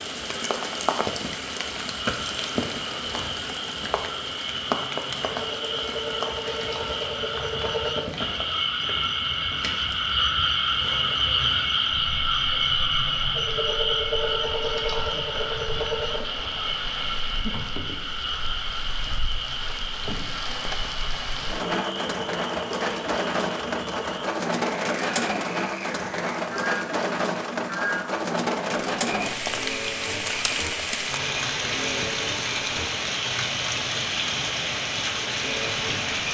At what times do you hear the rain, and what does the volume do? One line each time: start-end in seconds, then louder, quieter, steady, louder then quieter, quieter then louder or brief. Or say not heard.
0.0-36.2 quieter then louder.